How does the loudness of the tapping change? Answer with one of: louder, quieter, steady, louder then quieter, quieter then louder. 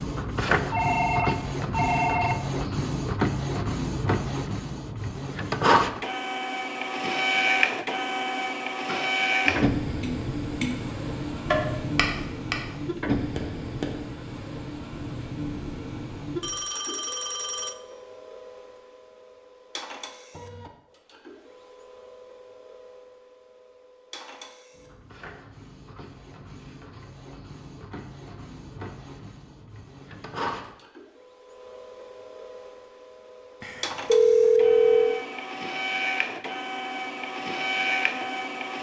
louder then quieter.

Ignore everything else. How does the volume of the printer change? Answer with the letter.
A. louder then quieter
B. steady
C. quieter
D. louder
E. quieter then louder
E.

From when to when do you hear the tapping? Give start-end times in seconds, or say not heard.
8.8-13.9.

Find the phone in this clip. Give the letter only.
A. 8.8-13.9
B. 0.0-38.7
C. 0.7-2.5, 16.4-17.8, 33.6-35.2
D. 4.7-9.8
C.